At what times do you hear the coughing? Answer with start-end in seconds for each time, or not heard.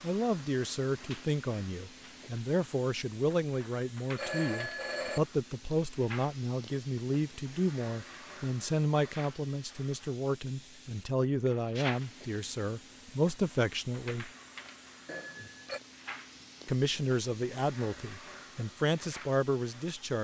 not heard.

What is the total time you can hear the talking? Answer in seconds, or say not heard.
18 s.